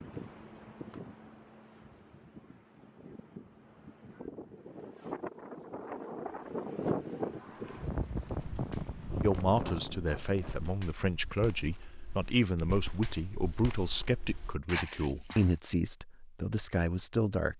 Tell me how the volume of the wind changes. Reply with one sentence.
The volume of the wind goes up.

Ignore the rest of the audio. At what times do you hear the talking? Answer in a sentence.
You can hear the talking from 9.2 to 17.5 s.